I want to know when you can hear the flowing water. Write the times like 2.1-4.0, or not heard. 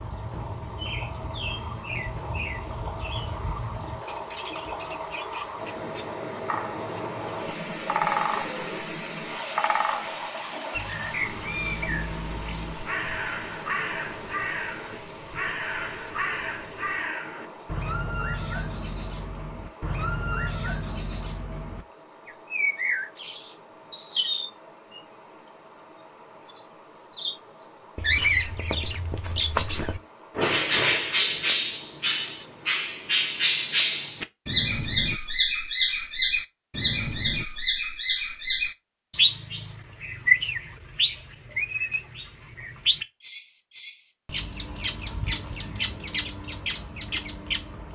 0.0-34.1.